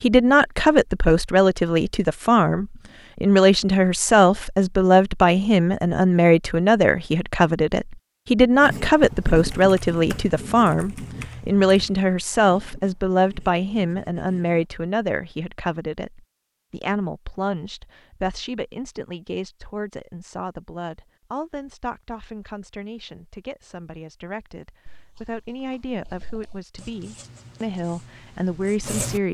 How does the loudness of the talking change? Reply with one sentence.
The loudness of the talking goes down.